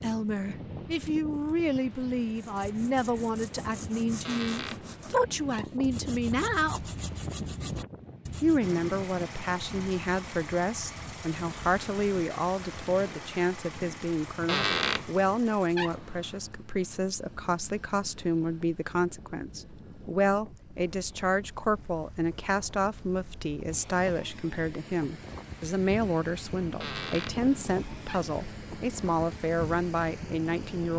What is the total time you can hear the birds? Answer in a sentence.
The birds can't be heard in this clip.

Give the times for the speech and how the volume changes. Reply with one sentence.
The speech can be heard from 0.0 to 6.8 s, at a steady volume; and from 8.4 to 30.9 s, at a steady volume.